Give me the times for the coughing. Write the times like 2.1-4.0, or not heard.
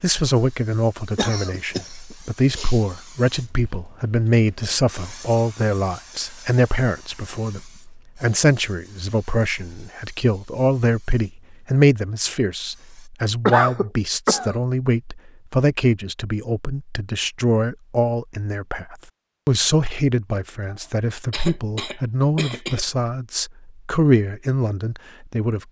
1.1-2.8, 13.4-14.6, 21.3-22.8.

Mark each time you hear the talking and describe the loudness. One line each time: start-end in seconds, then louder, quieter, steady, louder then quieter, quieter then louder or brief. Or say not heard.
0.0-25.6 steady.